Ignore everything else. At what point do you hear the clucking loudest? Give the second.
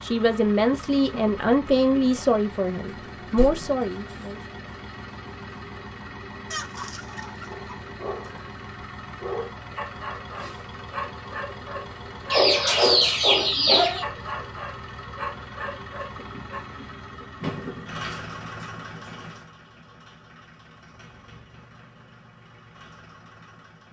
13 s.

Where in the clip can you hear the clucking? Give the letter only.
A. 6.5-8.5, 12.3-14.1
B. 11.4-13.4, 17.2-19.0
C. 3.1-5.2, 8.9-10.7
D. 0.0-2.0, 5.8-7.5
A.